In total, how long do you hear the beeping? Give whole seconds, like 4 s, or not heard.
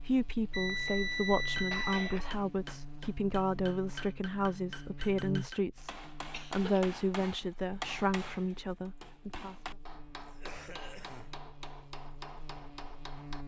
2 s.